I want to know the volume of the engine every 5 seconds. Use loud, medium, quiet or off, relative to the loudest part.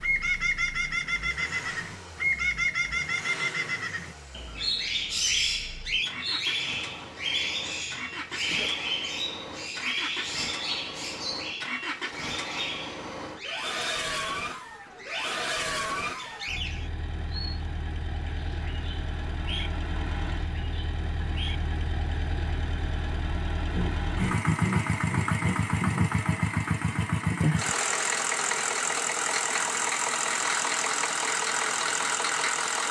quiet, quiet, medium, medium, medium, loud, loud.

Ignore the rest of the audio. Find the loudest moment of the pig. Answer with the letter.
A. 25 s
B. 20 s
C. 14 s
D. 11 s
A.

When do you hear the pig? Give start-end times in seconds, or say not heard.
23.7-26.2.